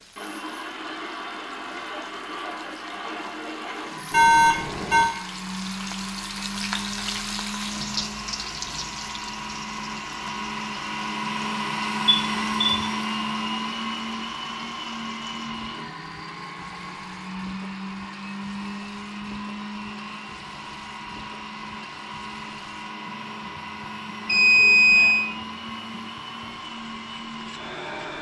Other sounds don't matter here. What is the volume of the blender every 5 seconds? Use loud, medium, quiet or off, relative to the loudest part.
medium, medium, loud, medium, medium, medium.